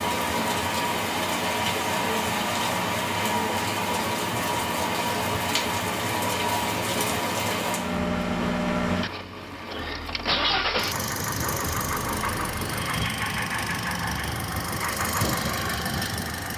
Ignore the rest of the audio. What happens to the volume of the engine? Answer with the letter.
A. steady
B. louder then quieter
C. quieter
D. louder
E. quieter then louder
D.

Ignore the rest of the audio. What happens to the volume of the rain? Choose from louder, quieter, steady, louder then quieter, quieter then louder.
quieter.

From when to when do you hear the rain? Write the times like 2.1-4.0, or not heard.
0.0-12.9.